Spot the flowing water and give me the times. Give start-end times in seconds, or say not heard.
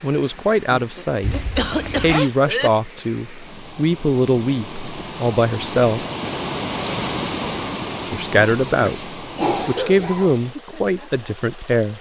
0.0-11.9.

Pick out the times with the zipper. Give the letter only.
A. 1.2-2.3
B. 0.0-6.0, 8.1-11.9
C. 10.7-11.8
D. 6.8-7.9
A.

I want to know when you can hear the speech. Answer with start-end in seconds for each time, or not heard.
0.0-6.0, 8.1-11.9.